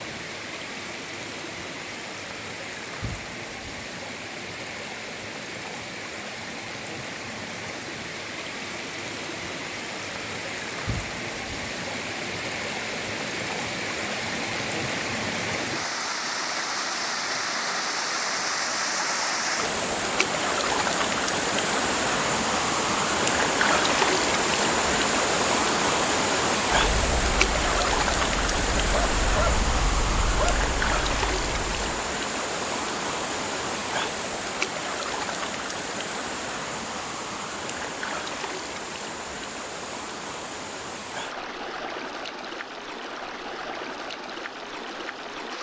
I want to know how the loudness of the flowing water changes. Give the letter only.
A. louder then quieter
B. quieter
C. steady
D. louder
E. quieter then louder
A.